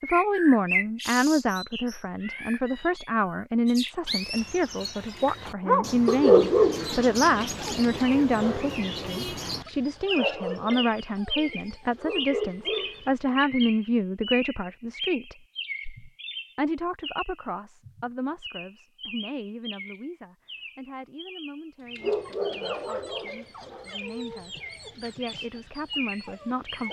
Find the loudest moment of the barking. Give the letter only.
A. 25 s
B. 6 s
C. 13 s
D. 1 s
B.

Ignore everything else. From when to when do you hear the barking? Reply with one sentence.
You can hear the barking from 5.7 to 13.2 s and from 21.9 to 26.8 s.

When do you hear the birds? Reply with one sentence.
The birds can be heard from 0.0 to 26.8 s.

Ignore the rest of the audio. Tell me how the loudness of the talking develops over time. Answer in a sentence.
The loudness of the talking goes down.